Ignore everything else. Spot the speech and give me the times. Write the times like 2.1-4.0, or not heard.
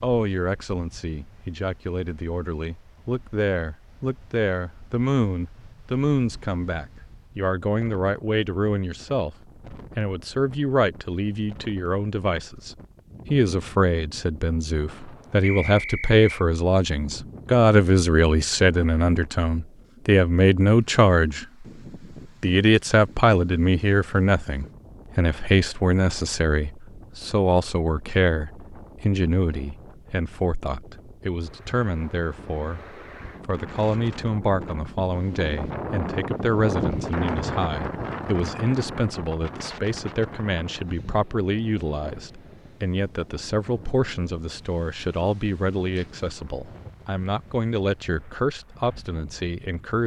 0.0-21.6, 22.4-50.0.